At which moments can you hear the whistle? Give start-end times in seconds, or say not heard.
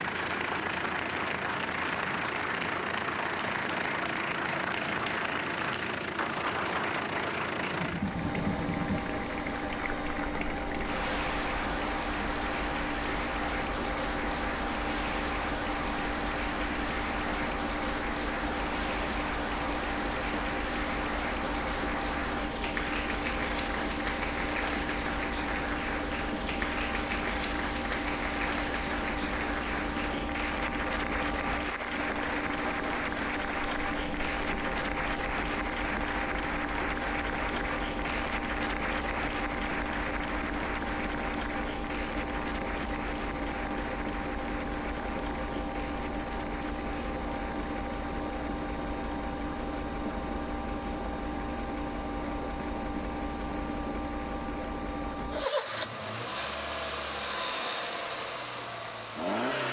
not heard.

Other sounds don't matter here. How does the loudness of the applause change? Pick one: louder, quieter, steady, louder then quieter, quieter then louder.
quieter.